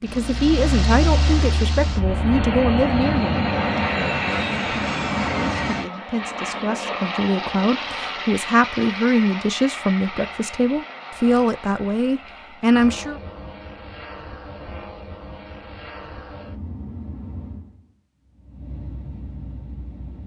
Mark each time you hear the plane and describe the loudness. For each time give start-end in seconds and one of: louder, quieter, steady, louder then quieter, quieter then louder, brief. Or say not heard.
0.0-20.2 quieter.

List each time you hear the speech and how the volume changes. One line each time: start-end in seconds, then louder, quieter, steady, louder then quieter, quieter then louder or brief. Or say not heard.
0.0-13.2 quieter then louder.